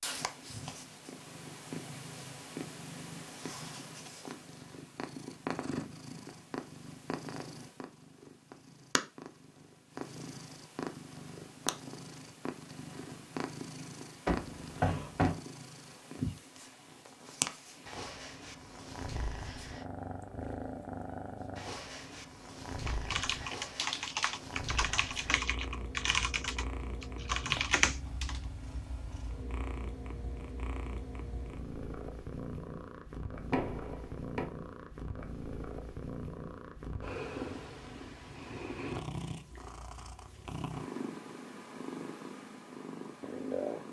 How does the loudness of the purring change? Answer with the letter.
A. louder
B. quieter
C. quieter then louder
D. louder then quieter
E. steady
E.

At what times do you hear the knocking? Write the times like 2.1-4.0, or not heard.
14.2-15.3, 33.5-34.5.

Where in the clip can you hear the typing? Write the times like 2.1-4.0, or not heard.
22.9-28.4.